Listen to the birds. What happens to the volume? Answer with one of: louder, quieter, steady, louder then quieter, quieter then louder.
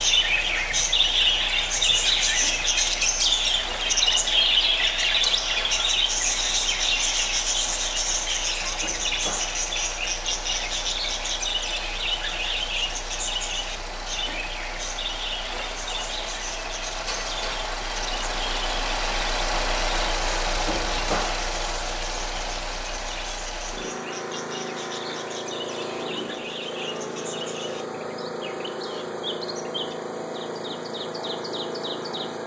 quieter.